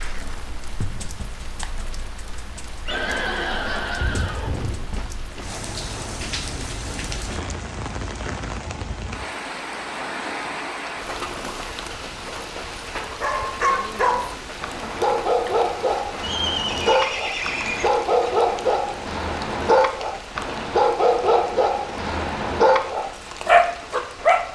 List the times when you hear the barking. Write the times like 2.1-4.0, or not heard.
13.2-24.4.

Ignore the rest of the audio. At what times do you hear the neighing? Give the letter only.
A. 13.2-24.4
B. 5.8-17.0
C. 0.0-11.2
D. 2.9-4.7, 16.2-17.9
D.